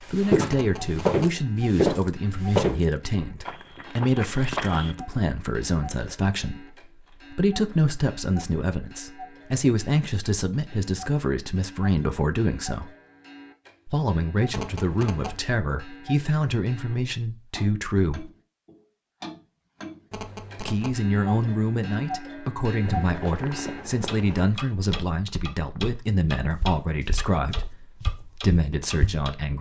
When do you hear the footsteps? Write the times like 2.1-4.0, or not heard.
0.0-5.0, 22.8-29.2.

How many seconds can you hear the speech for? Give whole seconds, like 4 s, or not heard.
26 s.